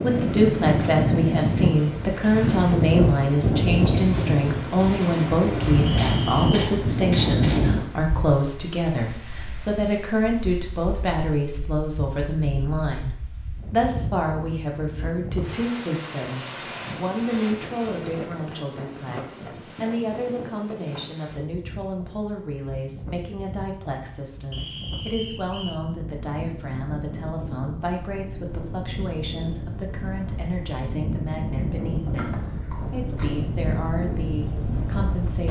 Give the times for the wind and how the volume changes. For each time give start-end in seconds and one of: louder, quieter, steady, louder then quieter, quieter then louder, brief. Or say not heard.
0.0-35.4 quieter then louder.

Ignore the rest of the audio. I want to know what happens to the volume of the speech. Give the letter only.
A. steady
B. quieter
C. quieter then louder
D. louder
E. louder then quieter
B.